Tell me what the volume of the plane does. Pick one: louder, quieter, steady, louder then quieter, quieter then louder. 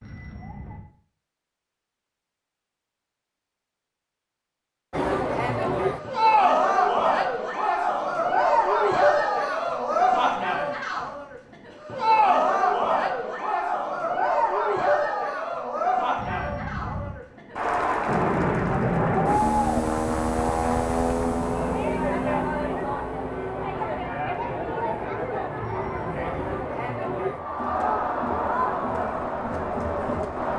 quieter.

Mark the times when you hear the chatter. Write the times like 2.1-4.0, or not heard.
4.9-30.5.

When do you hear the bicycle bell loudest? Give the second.
17 s.